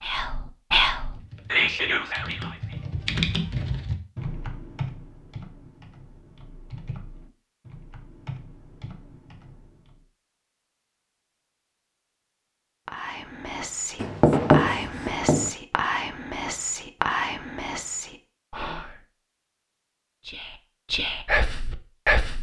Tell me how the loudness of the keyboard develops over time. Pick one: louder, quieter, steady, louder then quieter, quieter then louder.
louder then quieter.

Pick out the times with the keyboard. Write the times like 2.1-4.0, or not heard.
0.9-10.0.